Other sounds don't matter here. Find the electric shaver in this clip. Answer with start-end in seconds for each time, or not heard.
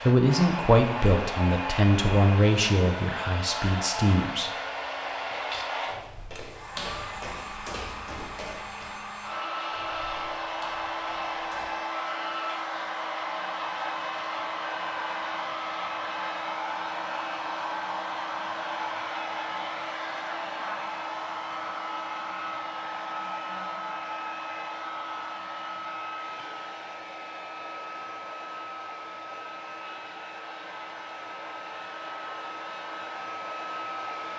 not heard.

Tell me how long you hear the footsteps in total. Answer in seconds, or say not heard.
7 s.